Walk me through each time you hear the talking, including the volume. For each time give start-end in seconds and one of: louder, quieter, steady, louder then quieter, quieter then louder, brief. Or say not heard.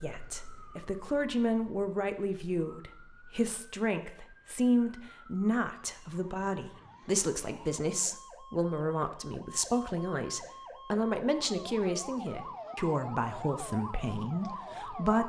0.0-15.2 steady.